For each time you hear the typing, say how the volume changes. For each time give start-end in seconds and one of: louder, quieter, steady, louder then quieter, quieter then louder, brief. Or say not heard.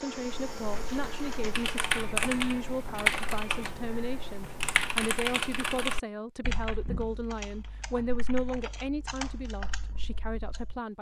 0.1-10.8 quieter.